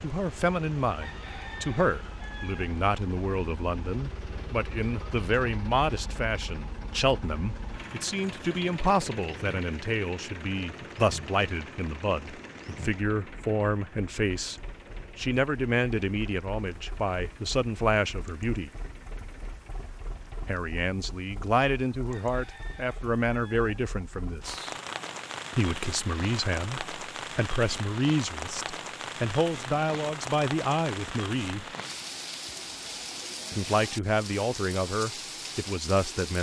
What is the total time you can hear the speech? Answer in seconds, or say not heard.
32 s.